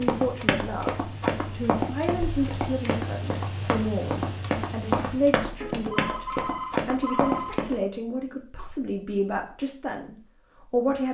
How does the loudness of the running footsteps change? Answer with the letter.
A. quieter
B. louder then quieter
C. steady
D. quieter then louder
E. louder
C.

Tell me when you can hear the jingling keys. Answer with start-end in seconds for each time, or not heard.
not heard.